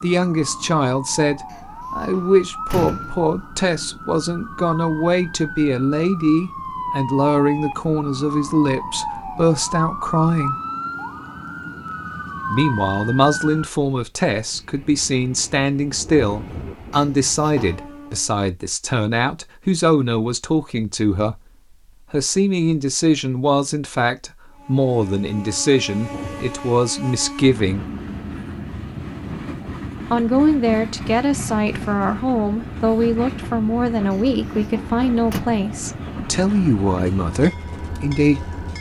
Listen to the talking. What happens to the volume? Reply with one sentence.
The volume of the talking stays about the same.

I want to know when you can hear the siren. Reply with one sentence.
The siren can be heard from 0.0 to 13.7 s.